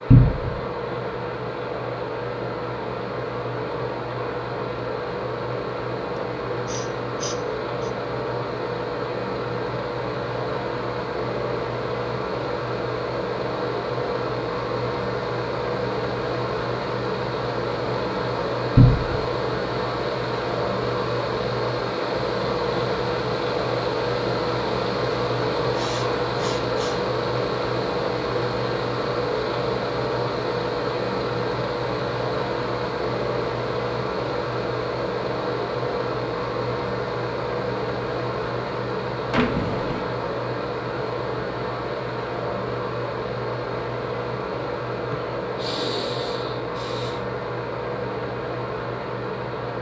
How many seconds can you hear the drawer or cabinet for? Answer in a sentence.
You can hear the drawer or cabinet for 2 seconds altogether.